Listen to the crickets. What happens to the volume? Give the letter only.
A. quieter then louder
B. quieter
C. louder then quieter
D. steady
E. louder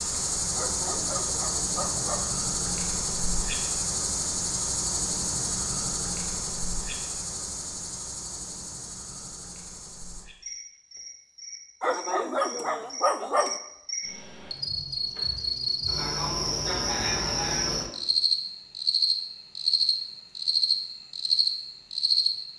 A.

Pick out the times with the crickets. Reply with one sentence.
You can hear the crickets from 0.0 to 22.3 s.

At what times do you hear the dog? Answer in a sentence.
You can hear the dog from 0.6 to 2.3 s and from 11.8 to 13.6 s.